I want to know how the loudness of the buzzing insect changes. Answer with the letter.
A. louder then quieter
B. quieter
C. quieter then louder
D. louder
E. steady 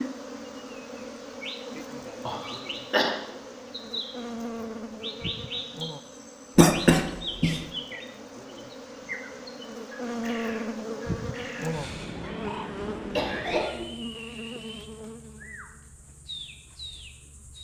A.